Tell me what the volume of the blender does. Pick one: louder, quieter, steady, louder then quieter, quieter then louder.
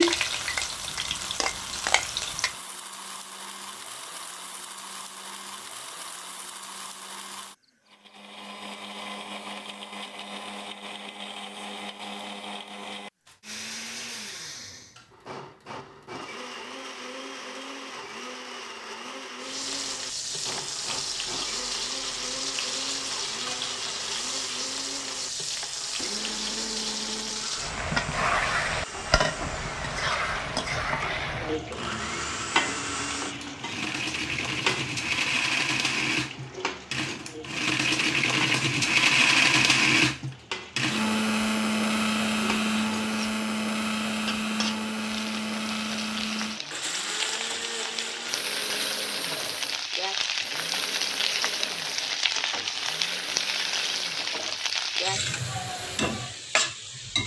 louder then quieter.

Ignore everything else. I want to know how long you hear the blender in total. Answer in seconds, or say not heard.
57 s.